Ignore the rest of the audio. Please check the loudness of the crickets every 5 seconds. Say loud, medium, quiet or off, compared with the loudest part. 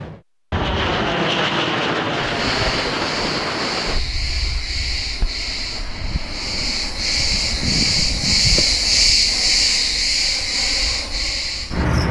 medium, loud, loud.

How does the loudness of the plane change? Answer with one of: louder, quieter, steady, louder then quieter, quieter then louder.
quieter.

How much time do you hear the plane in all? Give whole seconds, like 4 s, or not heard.
12 s.